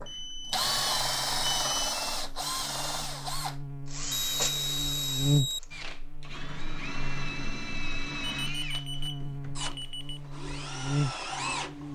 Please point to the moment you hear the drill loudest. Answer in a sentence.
The loudest moment of the drill is at 1 second.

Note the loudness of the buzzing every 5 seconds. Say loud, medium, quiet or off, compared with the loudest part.
medium, loud, loud.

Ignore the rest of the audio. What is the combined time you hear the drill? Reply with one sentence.
You can hear the drill for 12 seconds altogether.